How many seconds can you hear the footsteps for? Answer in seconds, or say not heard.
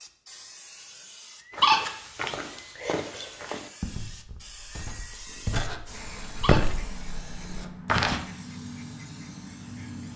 7 s.